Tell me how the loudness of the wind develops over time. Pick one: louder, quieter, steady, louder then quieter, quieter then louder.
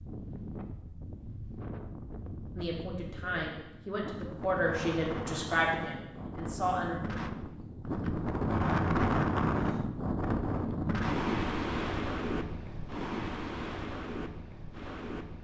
louder then quieter.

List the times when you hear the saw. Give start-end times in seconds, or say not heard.
not heard.